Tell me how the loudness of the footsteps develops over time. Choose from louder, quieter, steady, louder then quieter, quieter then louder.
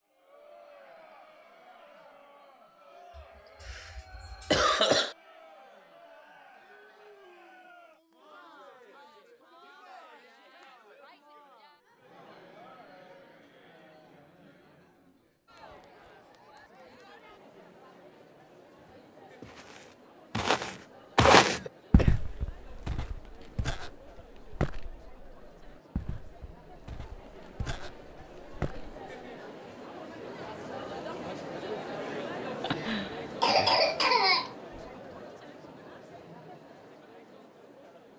quieter.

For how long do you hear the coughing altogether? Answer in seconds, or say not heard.
5 s.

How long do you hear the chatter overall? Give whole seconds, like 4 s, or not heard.
38 s.